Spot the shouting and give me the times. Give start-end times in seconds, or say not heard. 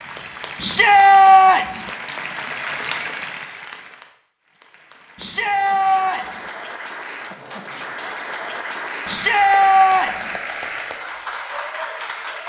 0.6-1.9, 5.2-6.4, 9.1-10.3.